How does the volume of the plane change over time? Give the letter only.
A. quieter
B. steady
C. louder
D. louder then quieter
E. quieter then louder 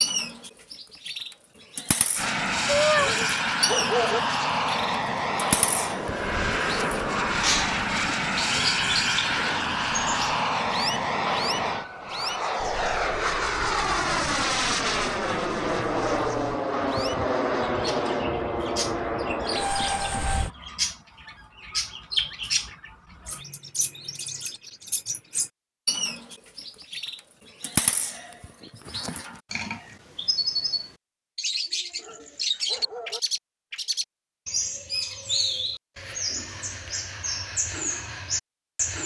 B.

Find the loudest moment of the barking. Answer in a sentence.
The volume of the barking peaks at 4 seconds.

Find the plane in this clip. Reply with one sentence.
The plane can be heard from 2.1 to 20.5 s.